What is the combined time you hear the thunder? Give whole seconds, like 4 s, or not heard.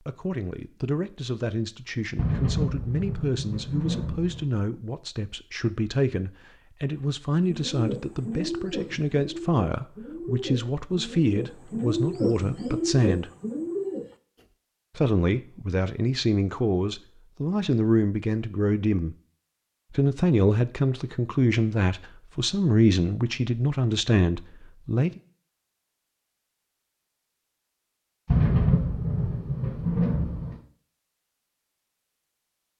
5 s.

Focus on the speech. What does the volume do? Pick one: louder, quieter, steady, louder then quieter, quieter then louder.
louder.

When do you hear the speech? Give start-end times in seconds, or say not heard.
0.1-13.3, 14.9-19.1, 19.9-25.1.